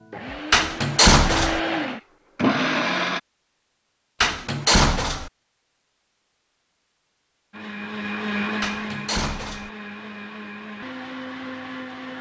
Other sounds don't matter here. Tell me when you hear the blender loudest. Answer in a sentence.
The loudest moment of the blender is at 3 seconds.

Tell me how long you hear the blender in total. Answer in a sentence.
You can hear the blender for 8 seconds altogether.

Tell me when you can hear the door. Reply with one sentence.
You can hear the door from 0.5 to 1.6 s, from 4.2 to 5.3 s and from 8.6 to 9.7 s.